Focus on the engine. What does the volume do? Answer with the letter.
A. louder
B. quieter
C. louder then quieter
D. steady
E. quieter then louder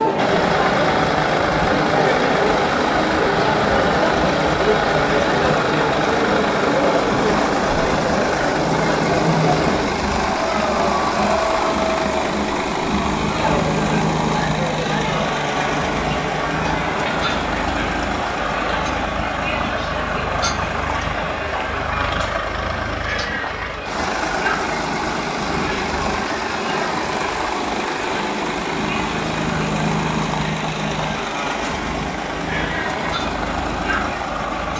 D.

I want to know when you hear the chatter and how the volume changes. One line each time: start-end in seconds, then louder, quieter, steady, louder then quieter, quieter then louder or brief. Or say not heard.
0.0-34.7 quieter.